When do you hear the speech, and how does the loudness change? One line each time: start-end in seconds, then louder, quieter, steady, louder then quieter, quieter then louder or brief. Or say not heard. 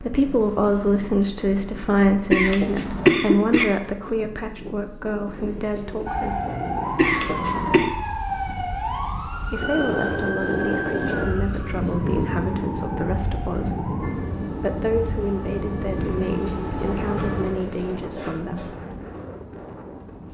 0.0-6.4 quieter
9.4-18.8 steady.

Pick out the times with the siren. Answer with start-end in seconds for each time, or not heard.
6.0-17.5.